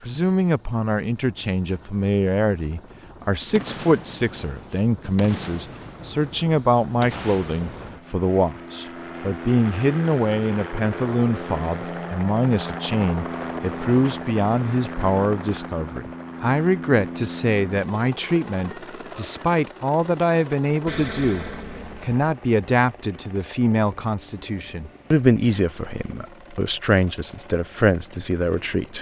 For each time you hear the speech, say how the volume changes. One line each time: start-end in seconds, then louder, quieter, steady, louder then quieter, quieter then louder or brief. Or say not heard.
0.0-28.9 steady.